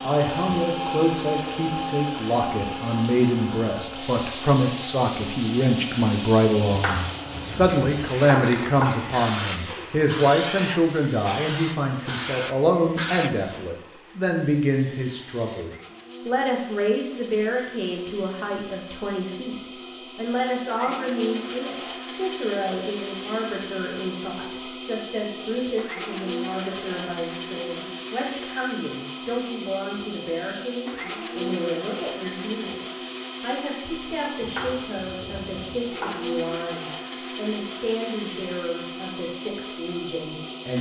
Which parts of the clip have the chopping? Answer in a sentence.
You can hear the chopping from 6.7 to 9.2 s and from 34.4 to 36.2 s.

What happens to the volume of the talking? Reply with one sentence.
The loudness of the talking goes down.